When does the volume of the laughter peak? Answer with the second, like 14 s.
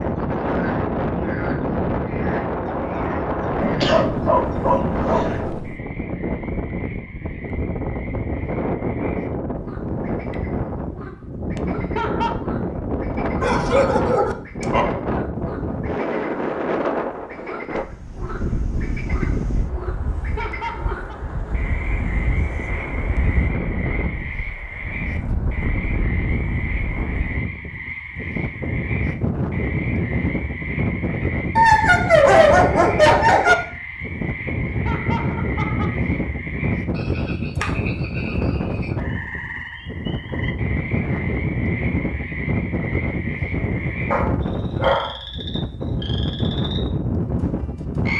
12 s.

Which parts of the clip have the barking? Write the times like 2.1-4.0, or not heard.
3.6-5.8, 13.4-14.8, 31.6-33.5, 44.1-45.1.